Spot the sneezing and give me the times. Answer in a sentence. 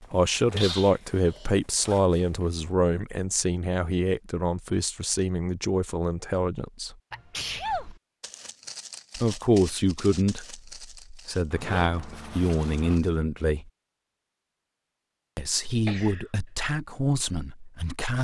The sneezing can be heard from 0.5 to 1.5 s, from 7.1 to 8.0 s and from 15.8 to 16.2 s.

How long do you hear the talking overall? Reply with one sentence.
The talking can be heard for 14 seconds in total.